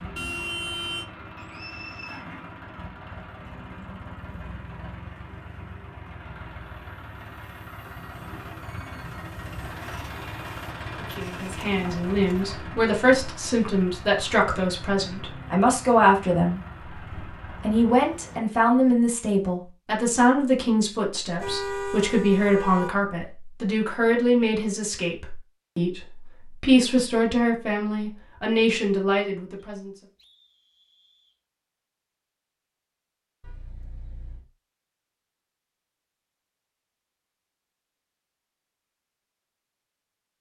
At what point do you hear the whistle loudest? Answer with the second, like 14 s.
2 s.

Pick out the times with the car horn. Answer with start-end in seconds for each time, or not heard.
0.1-1.1, 21.4-22.9, 33.4-34.5.